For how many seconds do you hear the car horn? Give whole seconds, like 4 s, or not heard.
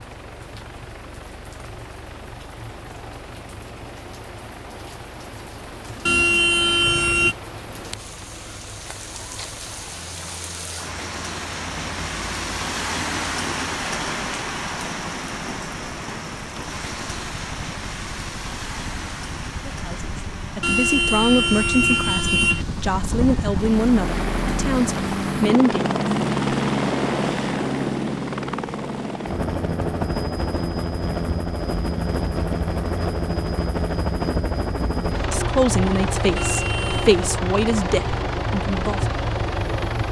4 s.